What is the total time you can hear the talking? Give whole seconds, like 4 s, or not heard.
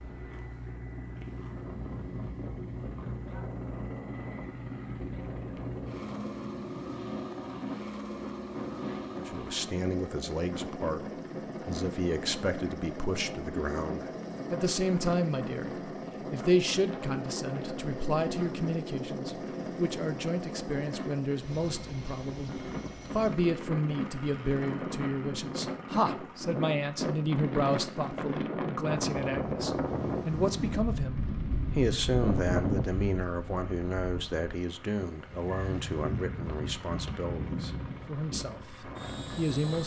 31 s.